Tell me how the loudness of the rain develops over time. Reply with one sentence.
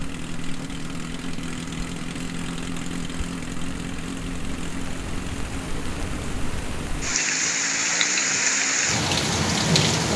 The volume of the rain goes up.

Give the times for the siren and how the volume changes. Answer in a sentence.
The siren can't be heard in this clip.